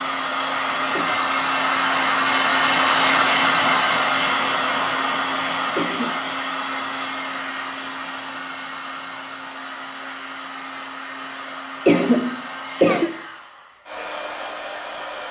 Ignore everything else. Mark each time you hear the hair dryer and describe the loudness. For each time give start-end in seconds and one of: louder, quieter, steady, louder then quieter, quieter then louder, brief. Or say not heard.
0.0-15.2 quieter.